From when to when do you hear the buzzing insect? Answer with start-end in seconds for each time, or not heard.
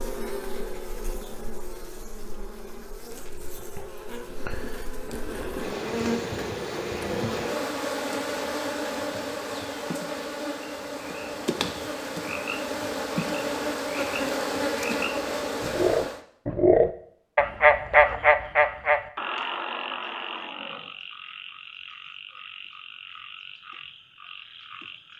0.0-16.2.